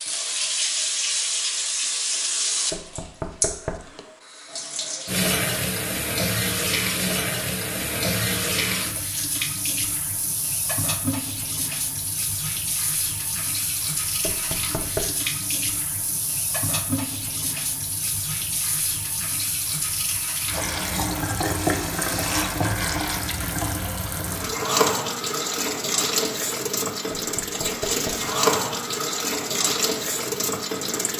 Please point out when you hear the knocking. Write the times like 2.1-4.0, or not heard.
2.7-3.9, 14.2-15.2, 27.1-28.3.